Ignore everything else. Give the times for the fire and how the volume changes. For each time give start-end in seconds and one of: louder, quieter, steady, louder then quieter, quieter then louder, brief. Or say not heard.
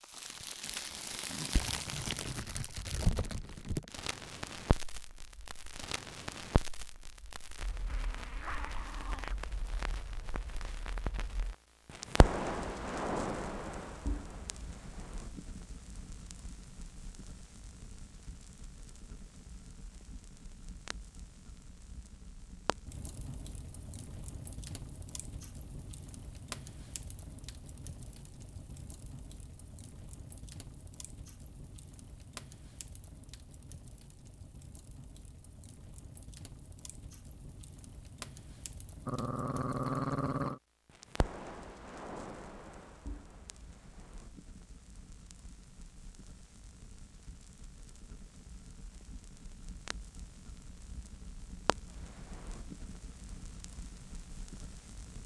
0.0-55.2 quieter.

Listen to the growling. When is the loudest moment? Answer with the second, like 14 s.
40 s.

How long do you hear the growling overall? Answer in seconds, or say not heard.
3 s.